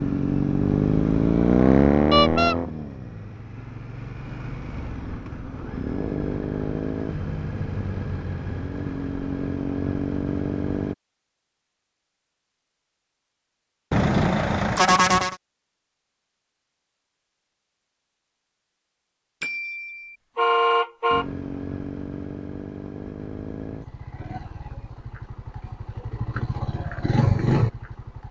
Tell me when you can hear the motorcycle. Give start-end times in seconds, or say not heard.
0.0-10.9, 21.1-28.2.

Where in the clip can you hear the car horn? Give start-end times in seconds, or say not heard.
2.1-2.5, 13.9-15.3, 19.4-21.2.